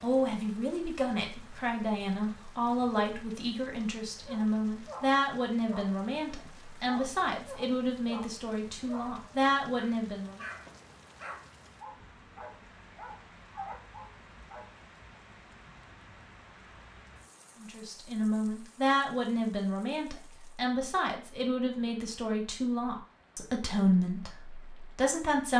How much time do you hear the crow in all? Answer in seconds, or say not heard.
not heard.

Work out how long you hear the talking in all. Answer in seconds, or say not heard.
18 s.